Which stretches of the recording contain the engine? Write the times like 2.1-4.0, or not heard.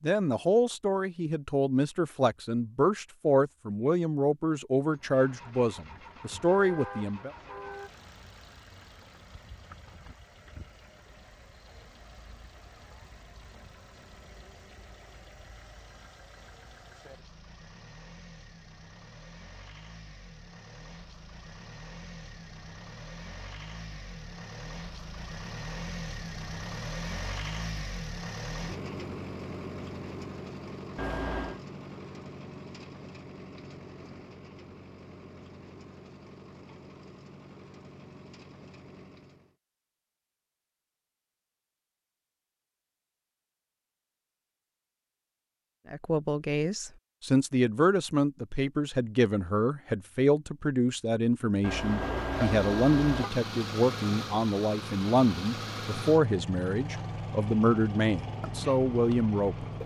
4.9-39.5, 51.8-59.8.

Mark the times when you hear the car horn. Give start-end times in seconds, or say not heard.
6.3-7.9, 30.9-31.6, 51.6-53.3.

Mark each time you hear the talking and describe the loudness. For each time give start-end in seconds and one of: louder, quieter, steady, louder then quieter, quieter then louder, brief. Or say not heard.
0.0-7.3 steady
45.9-59.7 steady.